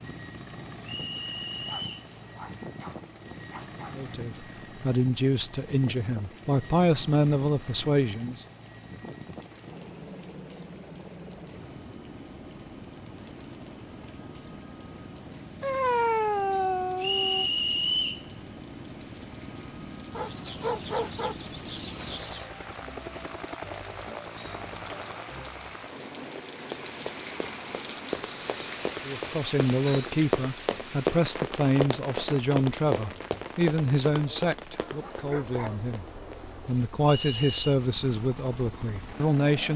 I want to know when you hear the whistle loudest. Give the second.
18 s.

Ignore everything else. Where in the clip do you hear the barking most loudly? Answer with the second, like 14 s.
16 s.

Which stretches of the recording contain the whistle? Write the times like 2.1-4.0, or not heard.
0.8-2.1, 17.0-18.2, 37.0-37.5.